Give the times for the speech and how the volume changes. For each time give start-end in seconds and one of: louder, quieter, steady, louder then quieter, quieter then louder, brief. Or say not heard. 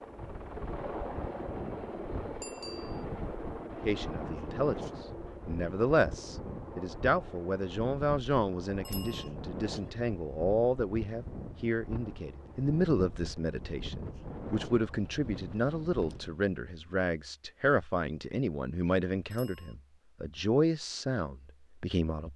3.8-22.3 steady.